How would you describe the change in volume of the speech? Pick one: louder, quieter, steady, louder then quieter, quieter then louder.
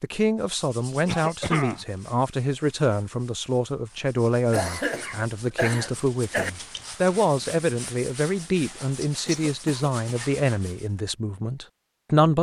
steady.